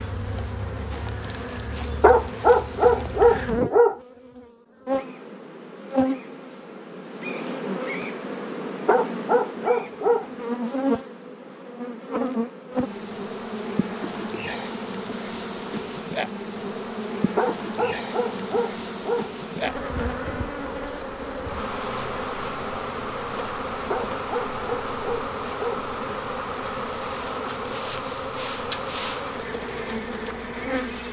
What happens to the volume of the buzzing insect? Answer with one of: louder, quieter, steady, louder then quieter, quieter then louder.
steady.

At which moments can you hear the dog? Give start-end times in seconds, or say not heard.
2.0-4.0, 8.8-10.2, 17.4-19.3, 23.9-25.9.